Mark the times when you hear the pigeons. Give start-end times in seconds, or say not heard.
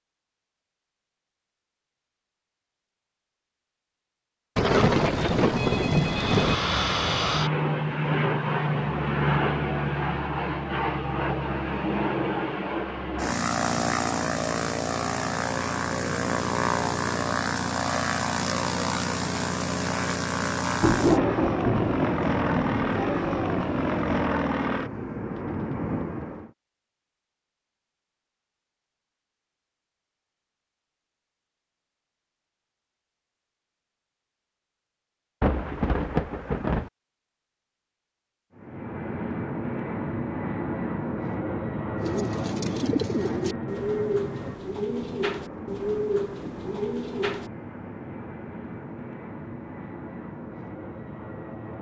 42.0-47.5.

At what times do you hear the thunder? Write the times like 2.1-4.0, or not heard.
4.5-6.5, 20.8-24.2, 35.4-36.9.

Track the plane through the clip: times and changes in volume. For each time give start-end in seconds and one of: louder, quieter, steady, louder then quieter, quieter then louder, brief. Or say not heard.
6.0-26.5 steady
38.5-51.7 quieter.